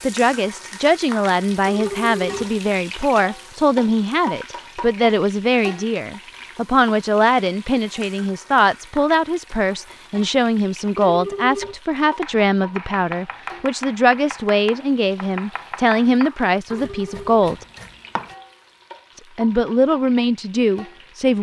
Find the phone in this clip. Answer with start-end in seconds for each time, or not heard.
1.6-2.6, 10.9-11.8, 16.7-17.3.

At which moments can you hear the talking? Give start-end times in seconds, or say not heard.
0.0-17.6, 19.1-21.3.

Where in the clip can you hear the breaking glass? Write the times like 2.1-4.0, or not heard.
not heard.